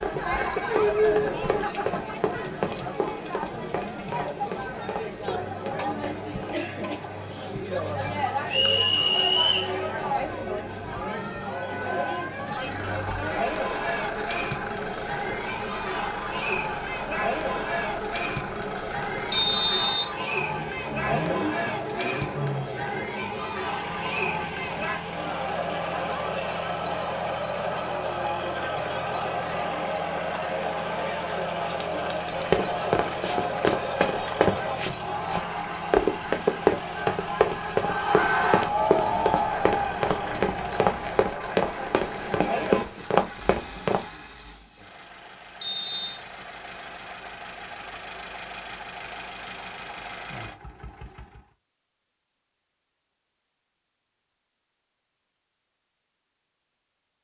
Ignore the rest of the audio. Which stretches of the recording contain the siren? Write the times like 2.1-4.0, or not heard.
not heard.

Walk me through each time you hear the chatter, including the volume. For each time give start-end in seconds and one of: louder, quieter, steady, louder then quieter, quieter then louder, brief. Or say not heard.
0.0-42.9 steady.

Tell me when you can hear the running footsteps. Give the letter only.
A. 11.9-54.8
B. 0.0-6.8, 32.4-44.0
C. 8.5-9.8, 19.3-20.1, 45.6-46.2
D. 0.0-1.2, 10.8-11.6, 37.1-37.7
B.